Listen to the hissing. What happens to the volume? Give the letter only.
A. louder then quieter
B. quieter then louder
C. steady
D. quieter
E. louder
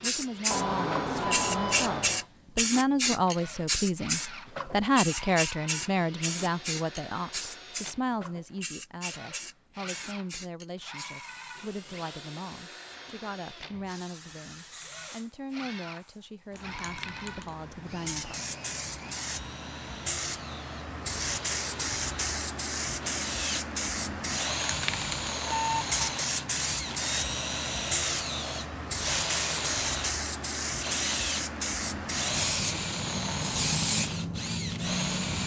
B.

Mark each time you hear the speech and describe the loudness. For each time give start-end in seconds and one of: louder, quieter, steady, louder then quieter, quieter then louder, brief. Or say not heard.
0.0-18.6 quieter.